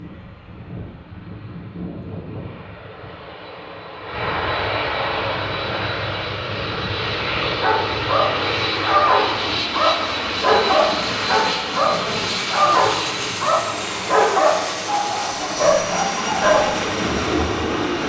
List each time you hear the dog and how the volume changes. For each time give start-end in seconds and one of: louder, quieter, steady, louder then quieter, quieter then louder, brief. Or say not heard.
7.4-17.5 steady.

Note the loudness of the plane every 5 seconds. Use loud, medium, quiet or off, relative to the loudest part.
medium, loud, loud, loud.